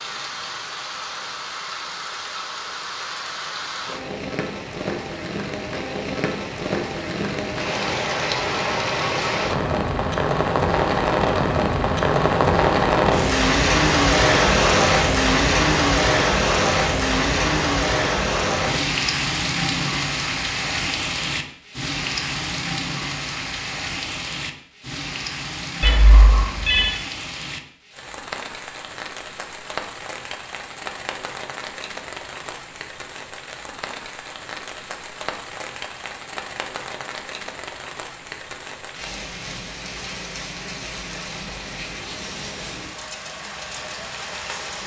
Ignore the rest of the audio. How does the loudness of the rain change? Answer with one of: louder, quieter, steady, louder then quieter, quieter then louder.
louder then quieter.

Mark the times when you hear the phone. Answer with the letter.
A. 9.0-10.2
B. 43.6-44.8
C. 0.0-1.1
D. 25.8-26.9
D.